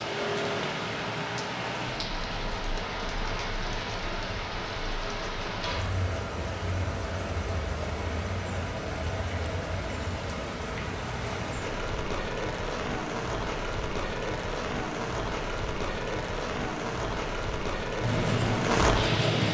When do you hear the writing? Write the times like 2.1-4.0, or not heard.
18.0-19.4.